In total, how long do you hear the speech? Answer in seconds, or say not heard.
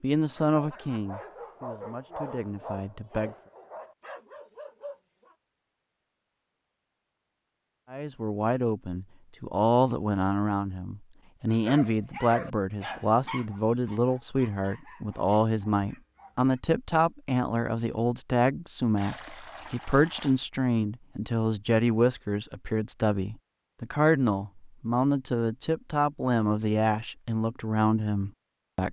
24 s.